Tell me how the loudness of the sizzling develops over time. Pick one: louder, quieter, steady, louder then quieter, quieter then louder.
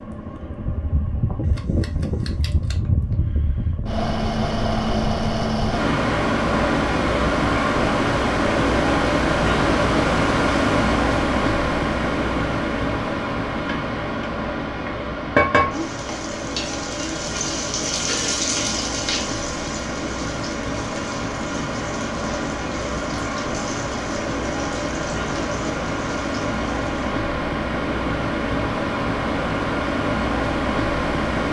quieter.